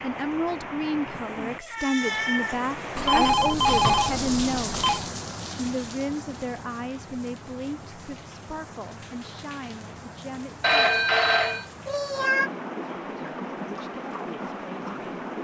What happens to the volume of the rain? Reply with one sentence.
The loudness of the rain goes down, then up.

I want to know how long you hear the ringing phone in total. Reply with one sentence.
You can hear the ringing phone for 3 seconds altogether.